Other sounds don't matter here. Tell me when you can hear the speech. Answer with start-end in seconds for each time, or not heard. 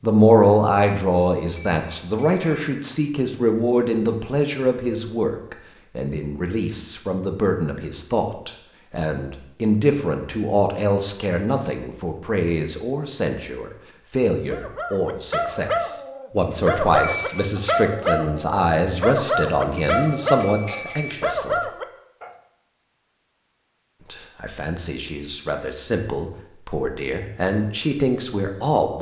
0.0-21.6, 24.1-28.9.